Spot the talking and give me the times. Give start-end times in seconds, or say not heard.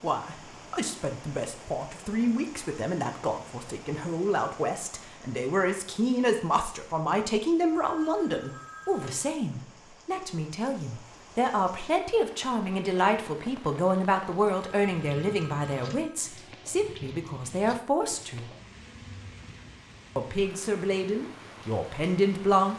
0.0-18.5, 20.1-22.7.